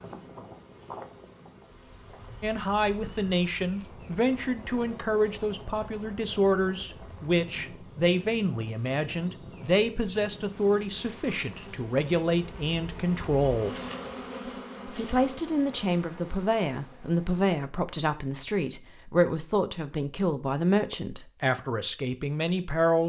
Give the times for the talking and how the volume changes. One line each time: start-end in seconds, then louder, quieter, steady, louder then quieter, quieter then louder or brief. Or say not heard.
2.4-13.8 steady
14.8-23.0 steady.